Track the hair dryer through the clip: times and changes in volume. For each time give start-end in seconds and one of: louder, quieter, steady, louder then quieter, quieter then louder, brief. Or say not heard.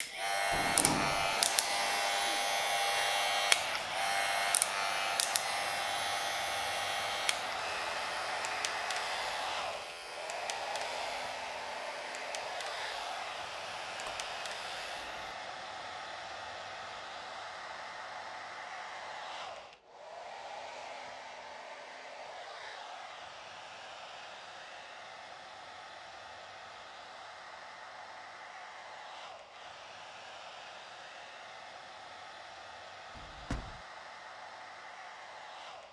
0.0-35.8 quieter.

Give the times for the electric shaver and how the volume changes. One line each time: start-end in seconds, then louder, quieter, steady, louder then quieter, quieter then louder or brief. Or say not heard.
0.0-15.3 quieter.